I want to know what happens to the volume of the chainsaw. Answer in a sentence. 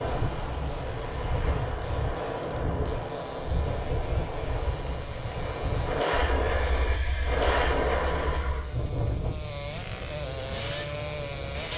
The loudness of the chainsaw goes up.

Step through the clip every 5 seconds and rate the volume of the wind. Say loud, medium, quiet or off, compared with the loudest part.
loud, loud, medium.